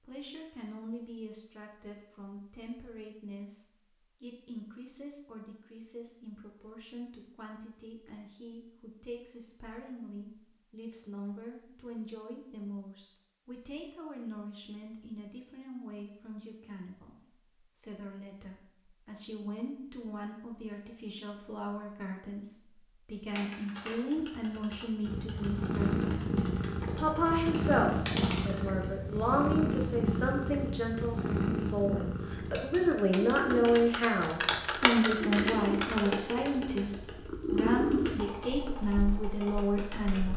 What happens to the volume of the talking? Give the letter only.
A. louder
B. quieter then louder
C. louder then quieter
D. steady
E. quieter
A.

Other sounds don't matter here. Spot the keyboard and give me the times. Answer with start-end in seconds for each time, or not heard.
23.3-28.9, 32.5-40.3.